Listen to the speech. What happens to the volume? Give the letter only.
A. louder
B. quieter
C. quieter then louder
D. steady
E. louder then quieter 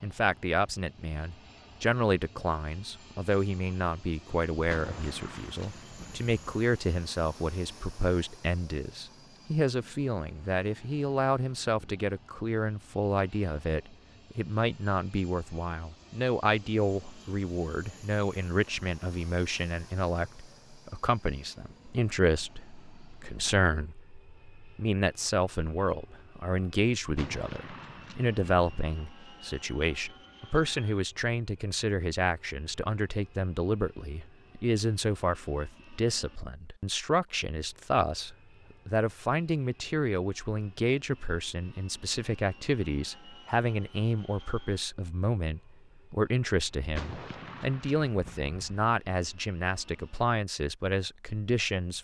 D.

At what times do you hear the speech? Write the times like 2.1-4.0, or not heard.
0.0-51.9.